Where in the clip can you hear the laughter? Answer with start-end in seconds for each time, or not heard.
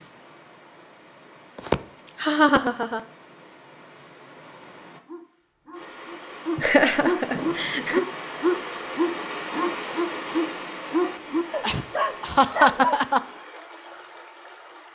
1.6-3.0, 6.5-8.0, 11.6-13.2.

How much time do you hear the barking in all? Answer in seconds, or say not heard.
8 s.